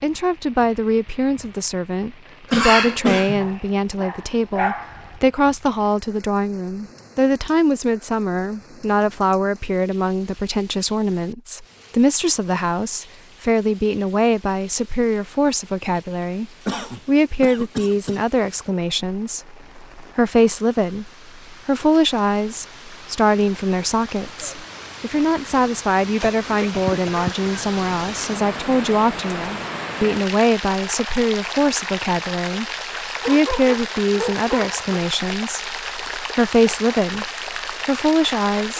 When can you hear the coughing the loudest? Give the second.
3 s.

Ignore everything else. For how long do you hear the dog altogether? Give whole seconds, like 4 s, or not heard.
3 s.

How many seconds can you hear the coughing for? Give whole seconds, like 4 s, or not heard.
4 s.